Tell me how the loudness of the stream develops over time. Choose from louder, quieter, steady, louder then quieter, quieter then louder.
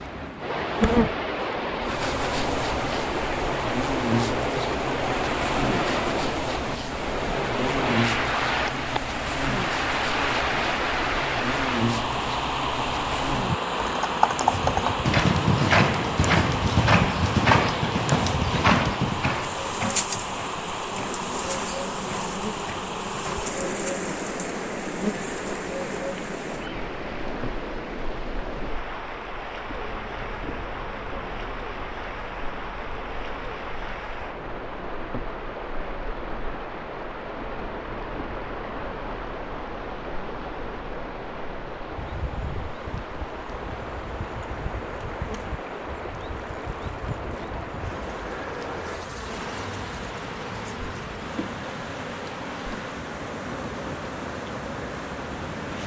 quieter.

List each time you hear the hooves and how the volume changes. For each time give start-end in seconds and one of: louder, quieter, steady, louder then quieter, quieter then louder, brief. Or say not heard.
13.8-23.5 quieter.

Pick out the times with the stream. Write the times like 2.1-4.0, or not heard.
0.0-55.8.